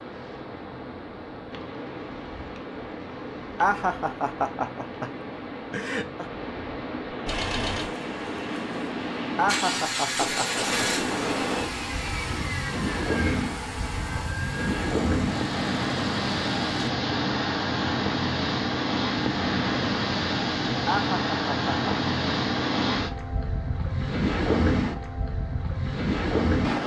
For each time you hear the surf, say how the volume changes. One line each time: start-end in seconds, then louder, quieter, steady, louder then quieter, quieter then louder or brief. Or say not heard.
0.0-26.8 louder.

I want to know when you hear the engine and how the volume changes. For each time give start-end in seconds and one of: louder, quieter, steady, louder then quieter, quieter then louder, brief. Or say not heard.
7.2-16.9 louder then quieter.